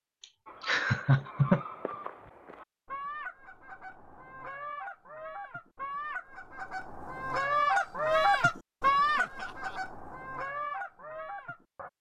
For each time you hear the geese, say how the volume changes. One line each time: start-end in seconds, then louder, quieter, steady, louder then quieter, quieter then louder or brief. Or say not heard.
0.5-11.9 louder then quieter.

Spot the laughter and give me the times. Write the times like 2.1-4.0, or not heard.
0.7-1.6, 9.2-9.8.